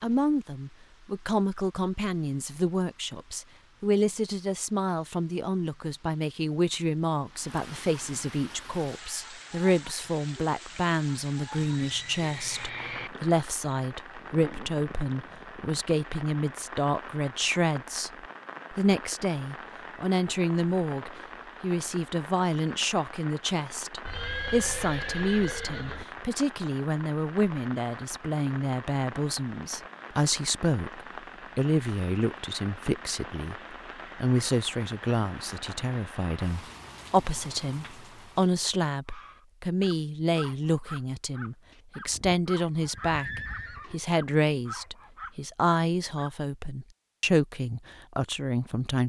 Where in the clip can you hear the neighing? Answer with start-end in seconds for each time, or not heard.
11.6-13.1, 24.1-26.1, 42.0-44.0.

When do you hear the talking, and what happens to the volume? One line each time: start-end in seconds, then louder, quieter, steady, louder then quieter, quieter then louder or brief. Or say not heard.
0.0-18.1 steady
18.7-49.0 steady.